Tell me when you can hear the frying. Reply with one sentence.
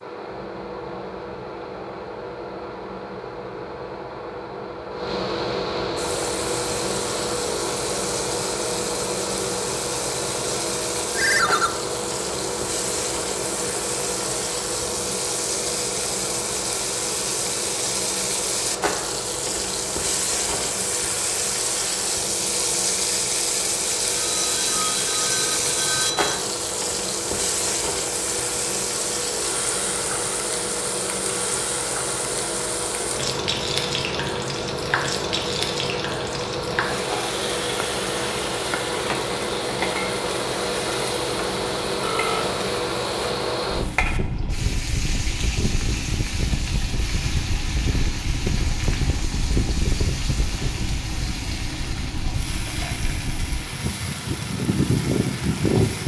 The frying can be heard from 6.0 to 56.0 s.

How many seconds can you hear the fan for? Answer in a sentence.
The fan can be heard for 56 seconds in total.